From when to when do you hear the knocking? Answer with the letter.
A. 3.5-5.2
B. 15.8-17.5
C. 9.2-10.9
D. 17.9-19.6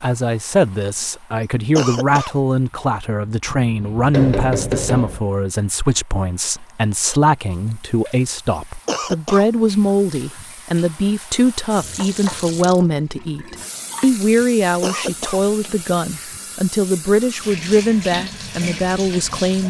A.